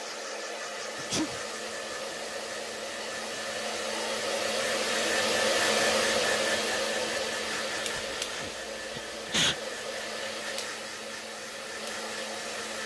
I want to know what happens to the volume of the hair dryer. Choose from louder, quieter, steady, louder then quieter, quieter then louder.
louder then quieter.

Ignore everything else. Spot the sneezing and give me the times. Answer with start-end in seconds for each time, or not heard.
0.9-1.4, 8.1-9.6.